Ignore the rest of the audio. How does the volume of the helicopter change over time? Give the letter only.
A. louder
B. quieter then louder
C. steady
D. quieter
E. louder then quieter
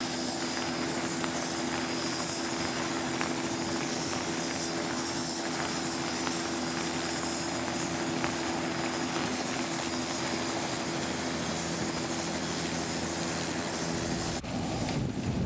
C.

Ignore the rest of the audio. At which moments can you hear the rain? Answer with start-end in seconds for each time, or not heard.
0.2-15.4.